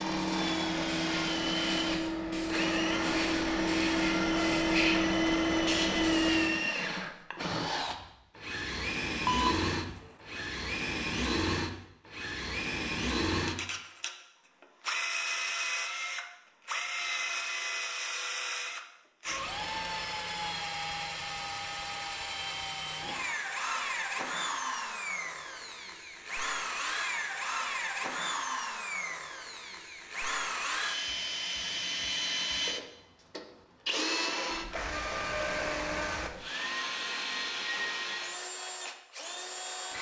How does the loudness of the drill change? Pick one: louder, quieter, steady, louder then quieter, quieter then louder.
steady.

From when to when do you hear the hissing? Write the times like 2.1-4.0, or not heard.
0.0-6.6.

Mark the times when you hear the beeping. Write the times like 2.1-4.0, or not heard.
9.2-10.0.